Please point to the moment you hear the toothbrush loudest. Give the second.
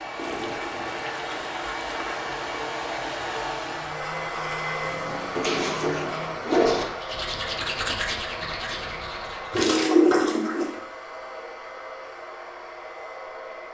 8 s.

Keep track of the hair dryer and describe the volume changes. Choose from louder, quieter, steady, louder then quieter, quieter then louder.
quieter.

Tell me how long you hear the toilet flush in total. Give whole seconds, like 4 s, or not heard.
5 s.